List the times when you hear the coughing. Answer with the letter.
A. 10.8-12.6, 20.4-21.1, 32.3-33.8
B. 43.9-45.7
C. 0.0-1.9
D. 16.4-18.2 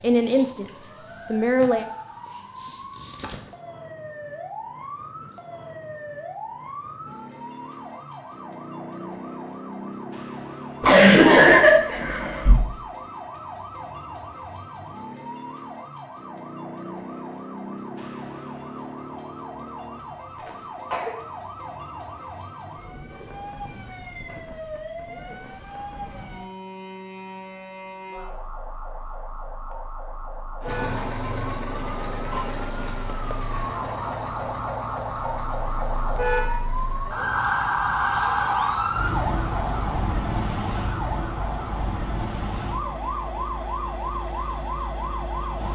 A.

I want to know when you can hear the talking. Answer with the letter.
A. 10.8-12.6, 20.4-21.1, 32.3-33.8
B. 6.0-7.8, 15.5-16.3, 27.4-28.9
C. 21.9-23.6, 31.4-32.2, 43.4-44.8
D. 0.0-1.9
D.